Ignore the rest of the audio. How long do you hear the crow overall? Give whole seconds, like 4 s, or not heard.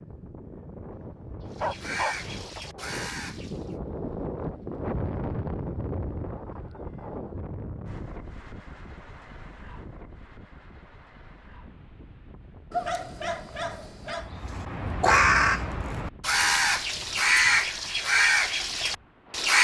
7 s.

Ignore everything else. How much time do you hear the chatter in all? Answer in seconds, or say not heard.
not heard.